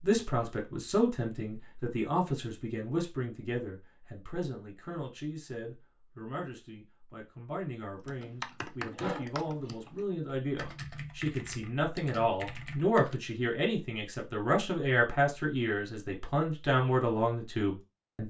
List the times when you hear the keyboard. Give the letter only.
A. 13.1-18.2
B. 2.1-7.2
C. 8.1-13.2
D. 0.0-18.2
C.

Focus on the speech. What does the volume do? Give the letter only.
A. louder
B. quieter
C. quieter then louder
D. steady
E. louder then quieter
C.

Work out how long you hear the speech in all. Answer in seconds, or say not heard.
18 s.